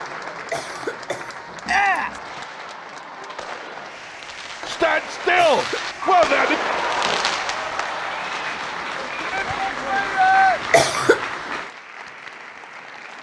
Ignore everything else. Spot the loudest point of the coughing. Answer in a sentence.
The loudest moment of the coughing is at 11 seconds.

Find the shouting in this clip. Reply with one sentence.
You can hear the shouting from 1.6 to 2.2 s, from 4.7 to 6.5 s and from 9.3 to 10.6 s.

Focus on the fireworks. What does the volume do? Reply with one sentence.
The volume of the fireworks goes up, then down.